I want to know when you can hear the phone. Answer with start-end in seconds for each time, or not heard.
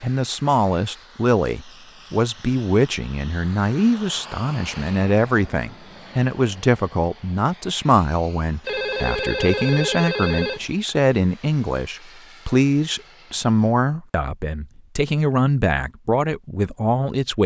8.6-10.8.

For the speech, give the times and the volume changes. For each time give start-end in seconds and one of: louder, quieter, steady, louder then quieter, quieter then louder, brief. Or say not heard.
0.0-17.4 steady.